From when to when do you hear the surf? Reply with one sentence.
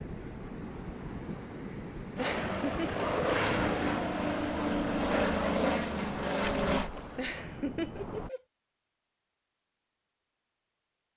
The surf can be heard from 0.0 to 8.3 s.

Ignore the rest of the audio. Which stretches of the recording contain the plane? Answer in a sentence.
You can hear the plane from 2.1 to 6.9 s.